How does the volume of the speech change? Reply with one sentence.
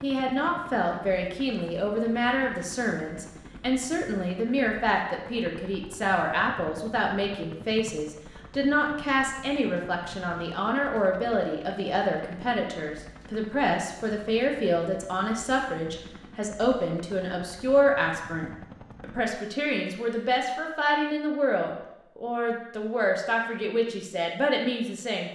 The loudness of the speech stays about the same.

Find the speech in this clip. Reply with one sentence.
You can hear the speech from 0.0 to 25.2 s.